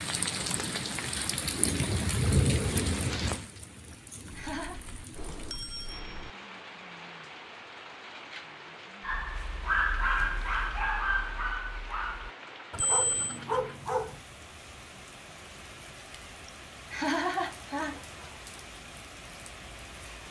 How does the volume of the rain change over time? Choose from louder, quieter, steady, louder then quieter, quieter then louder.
quieter.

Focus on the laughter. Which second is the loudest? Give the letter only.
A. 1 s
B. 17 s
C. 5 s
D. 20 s
B.